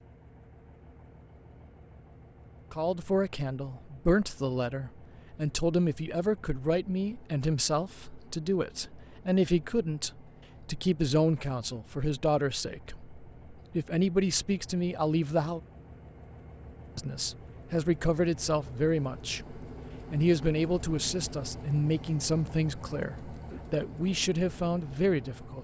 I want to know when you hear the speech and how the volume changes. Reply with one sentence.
You can hear the speech from 2.7 to 15.6 s, at a steady volume; and from 16.9 to 25.6 s, at a steady volume.